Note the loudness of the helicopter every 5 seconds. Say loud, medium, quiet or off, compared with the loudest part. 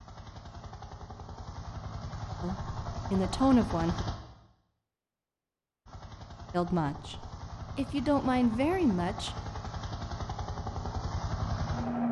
medium, medium, loud.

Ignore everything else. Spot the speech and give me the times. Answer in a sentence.
The speech can be heard from 2.4 to 4.0 s and from 6.5 to 9.3 s.